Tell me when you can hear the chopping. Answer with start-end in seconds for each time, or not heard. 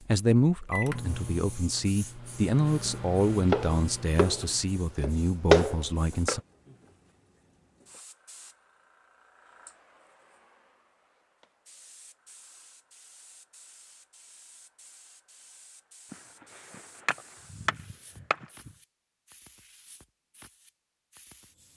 3.5-6.4, 16.1-18.7.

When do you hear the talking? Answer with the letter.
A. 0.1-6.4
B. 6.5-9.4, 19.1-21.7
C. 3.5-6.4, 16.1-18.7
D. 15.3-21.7
A.